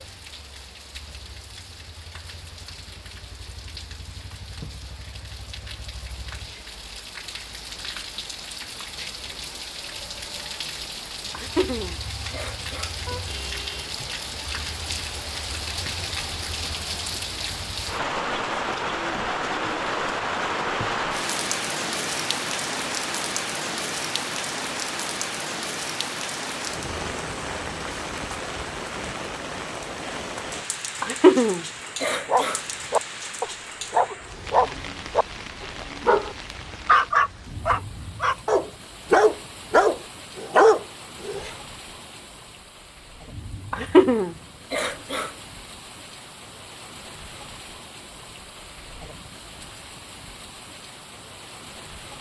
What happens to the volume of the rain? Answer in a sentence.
The loudness of the rain goes up, then down.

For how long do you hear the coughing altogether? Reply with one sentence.
The coughing can be heard for 5 seconds in total.